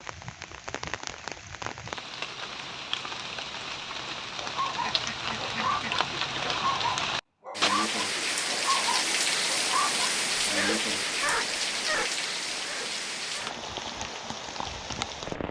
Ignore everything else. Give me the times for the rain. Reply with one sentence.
The rain can be heard from 0.0 to 15.4 s.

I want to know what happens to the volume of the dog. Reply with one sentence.
The volume of the dog stays about the same.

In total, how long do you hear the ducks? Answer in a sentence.
You can hear the ducks for 2 seconds altogether.